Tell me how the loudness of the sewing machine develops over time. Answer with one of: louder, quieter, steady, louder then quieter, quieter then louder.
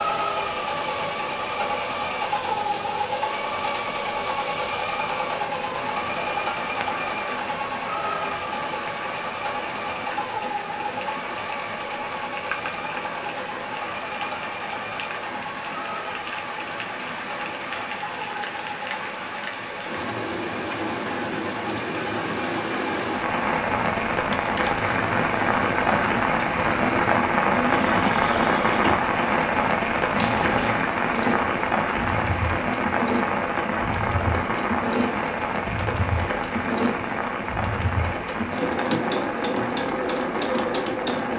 quieter then louder.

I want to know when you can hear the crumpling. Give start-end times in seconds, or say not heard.
24.3-25.1.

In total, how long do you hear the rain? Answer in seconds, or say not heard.
41 s.